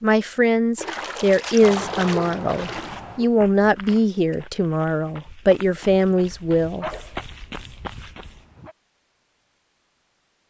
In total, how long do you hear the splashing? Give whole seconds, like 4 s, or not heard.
3 s.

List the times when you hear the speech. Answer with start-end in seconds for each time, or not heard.
0.0-6.8.